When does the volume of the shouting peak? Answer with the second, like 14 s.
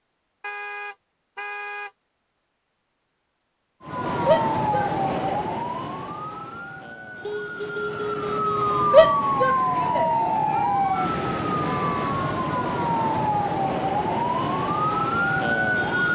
9 s.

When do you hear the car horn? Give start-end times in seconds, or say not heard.
0.4-1.9, 7.2-9.0, 11.6-12.2.